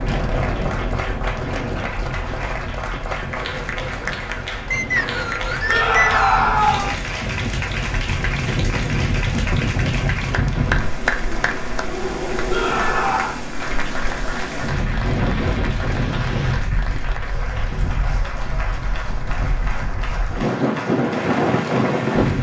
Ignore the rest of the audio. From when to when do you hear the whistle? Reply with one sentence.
The whistle can be heard from 4.7 to 6.5 s.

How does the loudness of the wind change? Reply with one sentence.
The volume of the wind goes up.